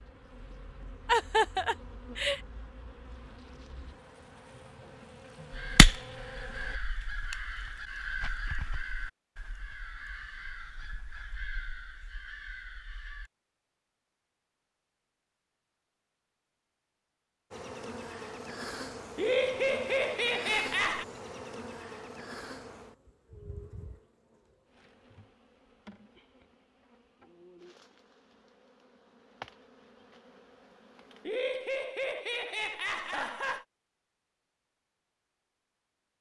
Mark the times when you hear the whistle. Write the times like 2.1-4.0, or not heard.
not heard.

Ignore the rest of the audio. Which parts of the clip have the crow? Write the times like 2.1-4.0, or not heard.
5.5-13.3.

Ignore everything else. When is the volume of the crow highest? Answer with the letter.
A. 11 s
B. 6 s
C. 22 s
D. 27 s
B.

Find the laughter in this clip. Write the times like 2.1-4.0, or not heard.
1.1-2.4, 19.1-21.1, 31.2-33.6.